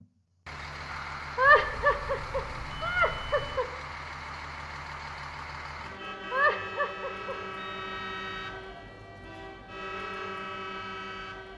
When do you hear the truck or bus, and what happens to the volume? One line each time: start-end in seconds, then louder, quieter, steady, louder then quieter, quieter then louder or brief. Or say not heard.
0.0-11.5 steady.